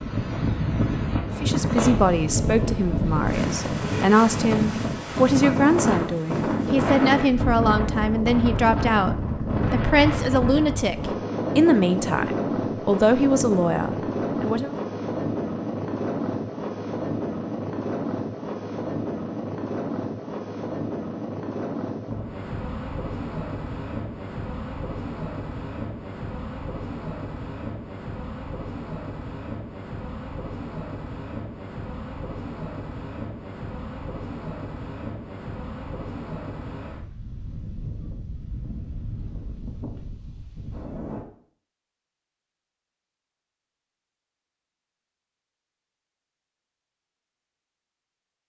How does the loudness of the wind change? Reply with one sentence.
The loudness of the wind goes down.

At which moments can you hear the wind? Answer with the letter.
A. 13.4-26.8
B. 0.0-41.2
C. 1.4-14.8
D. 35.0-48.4
B.